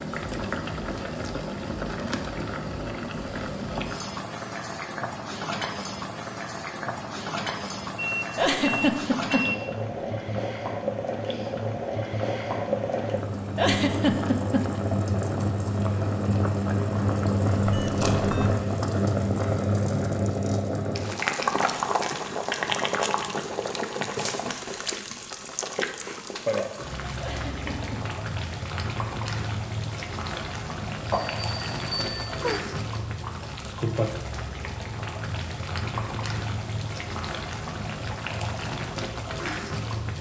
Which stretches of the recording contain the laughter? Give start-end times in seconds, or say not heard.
8.3-9.5, 13.6-14.7, 27.1-28.0.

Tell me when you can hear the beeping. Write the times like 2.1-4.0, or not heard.
8.0-10.3, 17.6-18.6, 31.1-32.6.